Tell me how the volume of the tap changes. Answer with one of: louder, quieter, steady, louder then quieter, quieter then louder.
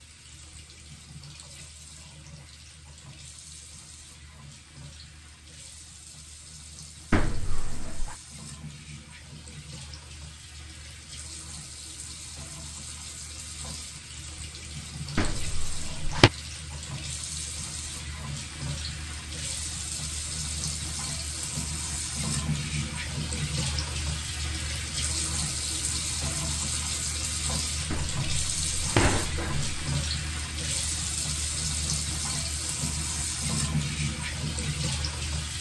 louder.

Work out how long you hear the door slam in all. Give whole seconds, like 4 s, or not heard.
4 s.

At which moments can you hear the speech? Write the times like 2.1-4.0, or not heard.
not heard.